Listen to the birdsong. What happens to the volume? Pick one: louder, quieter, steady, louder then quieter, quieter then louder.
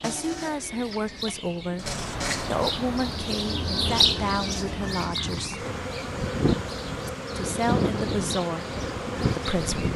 louder then quieter.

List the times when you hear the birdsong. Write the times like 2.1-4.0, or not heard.
0.0-9.9.